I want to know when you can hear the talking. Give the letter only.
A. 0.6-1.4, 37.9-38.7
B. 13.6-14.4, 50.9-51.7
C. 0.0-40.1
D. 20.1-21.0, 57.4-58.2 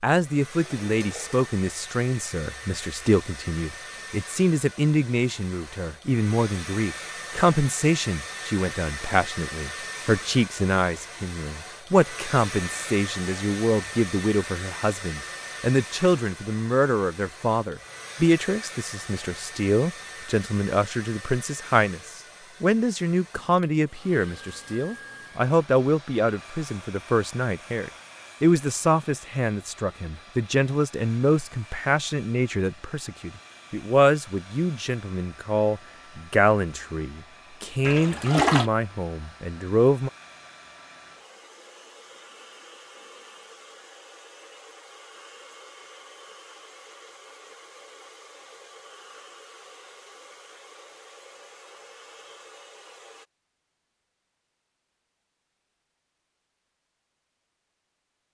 C.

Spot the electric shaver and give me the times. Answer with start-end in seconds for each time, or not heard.
not heard.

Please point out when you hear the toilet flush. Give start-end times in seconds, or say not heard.
0.6-1.4, 37.9-38.7.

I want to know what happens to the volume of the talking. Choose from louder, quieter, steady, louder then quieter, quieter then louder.
steady.